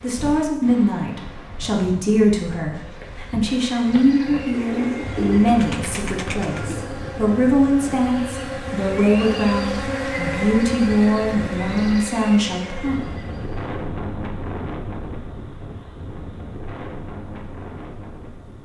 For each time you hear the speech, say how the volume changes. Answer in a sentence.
You can hear the speech from 0.0 to 12.9 s, at a steady volume.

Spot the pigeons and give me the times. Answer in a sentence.
The pigeons can be heard from 4.5 to 6.9 s.